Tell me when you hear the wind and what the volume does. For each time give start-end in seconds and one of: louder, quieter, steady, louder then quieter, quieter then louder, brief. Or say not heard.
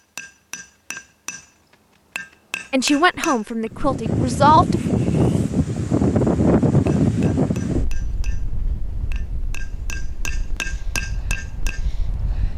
3.6-12.5 quieter.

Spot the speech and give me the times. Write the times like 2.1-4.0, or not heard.
2.7-4.8.